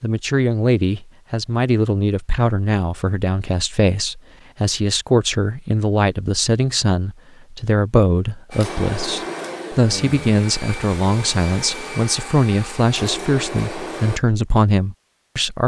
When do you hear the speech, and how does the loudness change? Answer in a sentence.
The speech can be heard from 0.0 to 15.6 s, at a steady volume.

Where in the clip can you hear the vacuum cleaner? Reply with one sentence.
You can hear the vacuum cleaner from 8.5 to 14.2 s.